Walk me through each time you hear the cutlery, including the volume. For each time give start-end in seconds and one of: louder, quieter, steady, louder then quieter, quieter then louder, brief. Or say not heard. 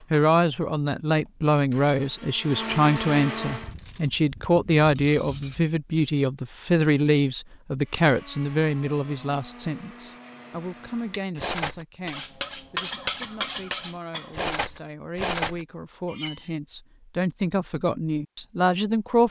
3.5-5.6 brief
11.1-16.6 steady.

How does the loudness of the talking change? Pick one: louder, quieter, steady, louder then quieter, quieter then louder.
quieter then louder.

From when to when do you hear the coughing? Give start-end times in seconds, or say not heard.
12.9-14.3.